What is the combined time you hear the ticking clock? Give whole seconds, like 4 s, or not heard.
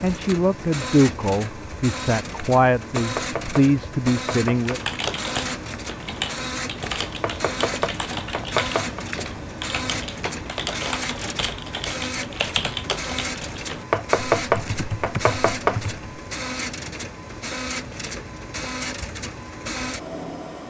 not heard.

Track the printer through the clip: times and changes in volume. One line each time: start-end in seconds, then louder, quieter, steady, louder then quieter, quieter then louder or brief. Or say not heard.
0.0-20.6 steady.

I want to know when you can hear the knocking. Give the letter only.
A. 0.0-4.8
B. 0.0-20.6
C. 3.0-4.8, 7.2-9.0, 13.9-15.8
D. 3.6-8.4
C.